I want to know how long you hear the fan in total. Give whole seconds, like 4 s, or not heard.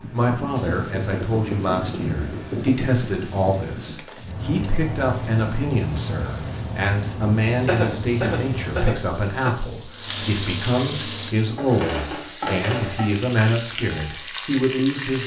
9 s.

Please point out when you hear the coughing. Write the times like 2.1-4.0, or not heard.
7.7-9.6.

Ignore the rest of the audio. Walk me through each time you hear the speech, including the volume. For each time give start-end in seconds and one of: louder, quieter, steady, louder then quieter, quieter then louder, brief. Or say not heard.
0.0-15.2 steady.